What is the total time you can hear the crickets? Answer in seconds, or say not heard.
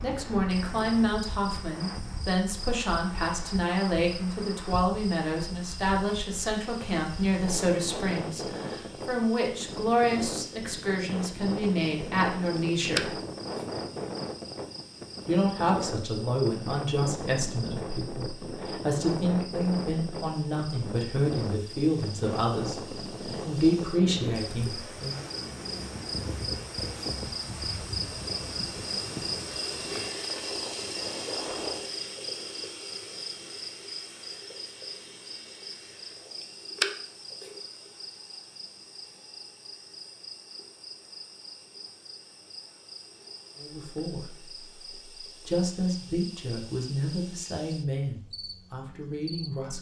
50 s.